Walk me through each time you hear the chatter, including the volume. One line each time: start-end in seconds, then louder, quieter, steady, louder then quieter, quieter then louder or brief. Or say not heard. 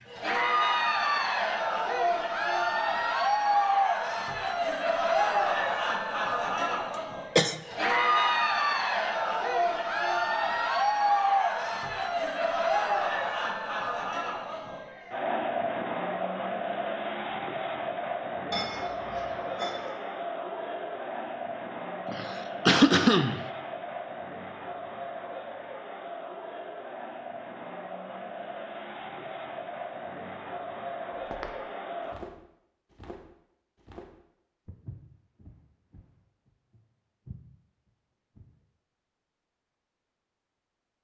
0.1-32.1 quieter.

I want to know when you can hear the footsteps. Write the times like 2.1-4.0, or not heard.
31.2-38.5.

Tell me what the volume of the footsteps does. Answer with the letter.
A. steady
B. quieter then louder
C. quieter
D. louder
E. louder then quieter
B.